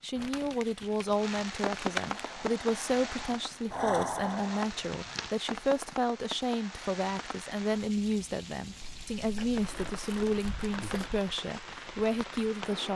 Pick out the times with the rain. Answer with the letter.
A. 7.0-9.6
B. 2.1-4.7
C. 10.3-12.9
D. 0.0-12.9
D.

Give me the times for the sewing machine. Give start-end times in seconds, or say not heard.
2.1-4.7.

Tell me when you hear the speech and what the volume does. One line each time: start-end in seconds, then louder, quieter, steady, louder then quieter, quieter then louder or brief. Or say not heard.
0.0-12.9 steady.